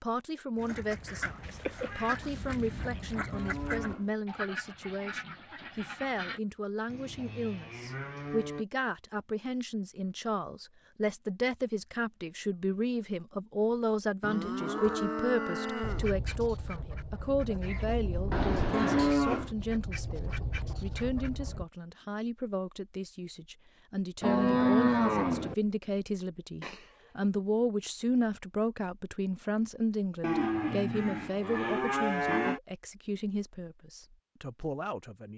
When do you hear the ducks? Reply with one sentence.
The ducks can be heard from 0.6 to 6.4 s and from 15.8 to 21.6 s.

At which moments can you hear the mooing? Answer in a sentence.
You can hear the mooing from 3.3 to 4.1 s, from 6.8 to 8.7 s, from 14.2 to 16.1 s, from 18.7 to 19.6 s, from 24.2 to 25.6 s and from 30.2 to 32.6 s.